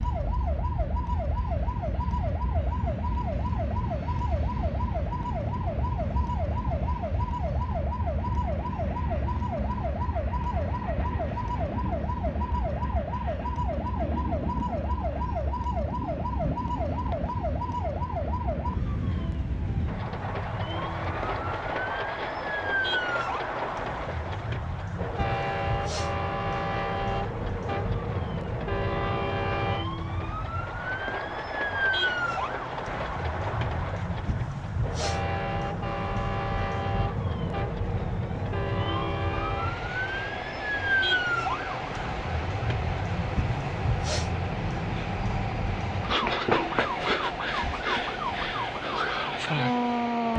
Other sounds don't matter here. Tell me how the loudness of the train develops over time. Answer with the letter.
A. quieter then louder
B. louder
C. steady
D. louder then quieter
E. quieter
C.